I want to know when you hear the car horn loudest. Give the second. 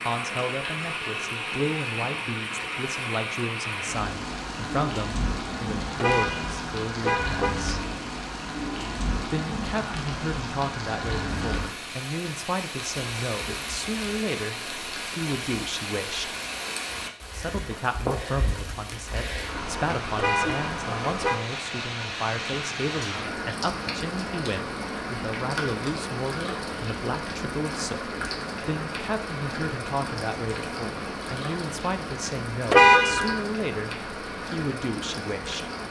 33 s.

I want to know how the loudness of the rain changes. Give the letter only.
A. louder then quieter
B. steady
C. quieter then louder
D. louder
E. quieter
B.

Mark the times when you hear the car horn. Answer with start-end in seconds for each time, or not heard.
6.0-7.5, 20.1-21.4, 32.7-33.4.